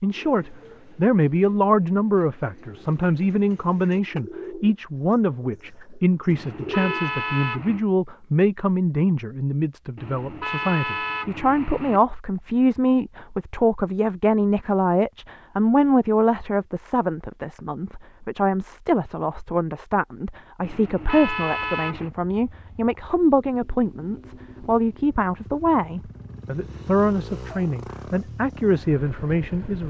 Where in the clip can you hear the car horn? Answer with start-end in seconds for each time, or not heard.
6.2-7.8, 9.9-12.0, 20.6-22.1.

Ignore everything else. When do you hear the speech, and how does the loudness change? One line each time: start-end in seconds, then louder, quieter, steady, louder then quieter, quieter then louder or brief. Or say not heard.
0.0-29.8 steady.